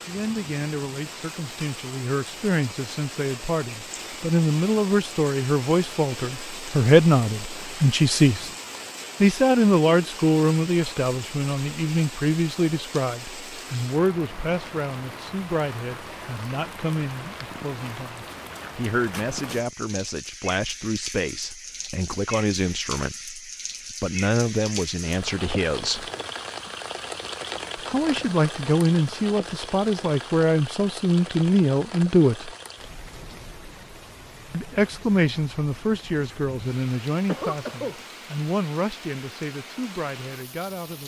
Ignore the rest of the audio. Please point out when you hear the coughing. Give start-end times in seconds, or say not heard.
37.2-38.0.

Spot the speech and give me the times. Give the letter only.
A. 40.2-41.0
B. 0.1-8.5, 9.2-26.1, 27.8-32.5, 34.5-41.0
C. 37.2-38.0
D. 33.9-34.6
B.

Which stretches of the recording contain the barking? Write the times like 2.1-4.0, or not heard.
not heard.